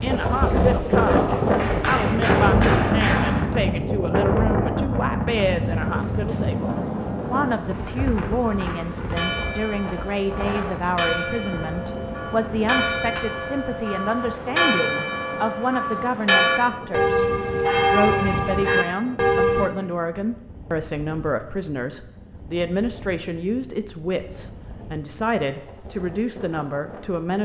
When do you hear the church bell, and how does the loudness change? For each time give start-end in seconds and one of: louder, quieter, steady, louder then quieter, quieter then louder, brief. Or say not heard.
8.3-19.7 louder.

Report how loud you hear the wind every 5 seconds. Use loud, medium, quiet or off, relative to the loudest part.
loud, medium, quiet, quiet, quiet, quiet.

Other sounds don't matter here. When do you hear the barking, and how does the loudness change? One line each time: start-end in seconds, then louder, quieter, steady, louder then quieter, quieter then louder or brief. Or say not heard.
not heard.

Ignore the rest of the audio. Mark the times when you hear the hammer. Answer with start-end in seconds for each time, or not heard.
1.6-3.5.